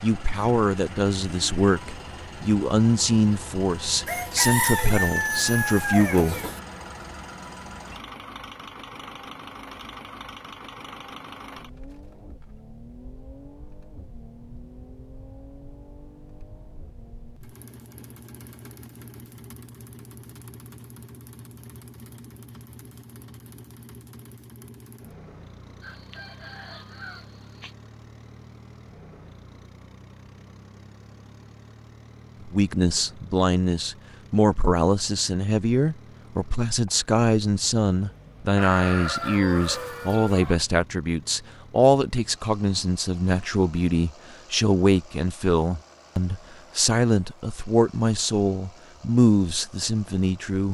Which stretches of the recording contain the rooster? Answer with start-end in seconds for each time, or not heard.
4.0-6.6, 25.8-27.8, 38.5-40.6.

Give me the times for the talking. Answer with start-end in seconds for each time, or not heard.
0.0-6.3, 32.5-50.6.